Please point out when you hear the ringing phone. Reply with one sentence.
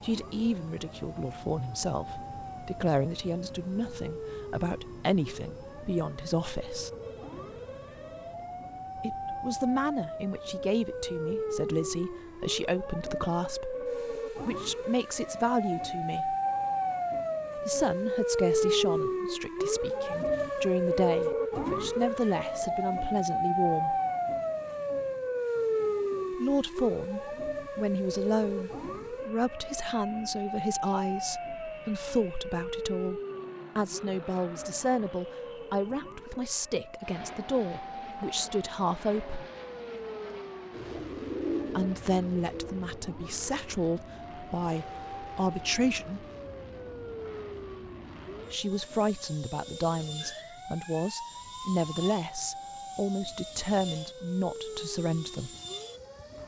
You can hear the ringing phone from 7.0 to 8.4 s.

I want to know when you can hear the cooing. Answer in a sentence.
The cooing can be heard from 40.7 to 42.8 s.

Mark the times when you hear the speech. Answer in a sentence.
The speech can be heard from 0.0 to 6.9 s, from 8.9 to 16.4 s, from 17.6 to 23.9 s, from 26.3 to 39.5 s, from 41.7 to 46.2 s and from 48.5 to 55.5 s.